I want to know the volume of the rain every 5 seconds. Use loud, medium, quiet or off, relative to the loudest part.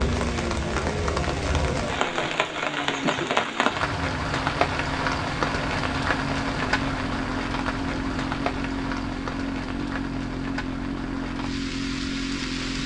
loud, loud, medium.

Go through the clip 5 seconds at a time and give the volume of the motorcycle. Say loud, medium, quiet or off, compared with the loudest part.
medium, loud, loud.